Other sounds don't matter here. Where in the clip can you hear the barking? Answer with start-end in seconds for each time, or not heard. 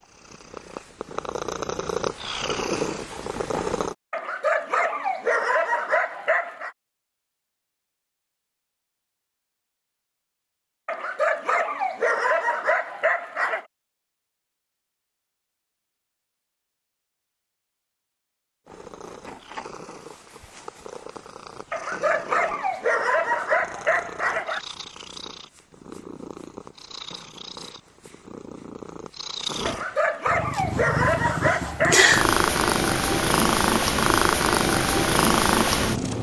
4.1-6.7, 10.8-13.7, 21.7-24.6, 29.6-32.1.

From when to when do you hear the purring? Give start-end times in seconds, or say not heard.
0.0-4.0, 18.6-36.1.